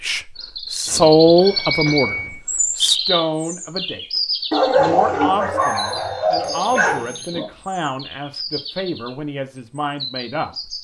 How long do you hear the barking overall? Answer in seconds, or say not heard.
3 s.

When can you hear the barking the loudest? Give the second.
5 s.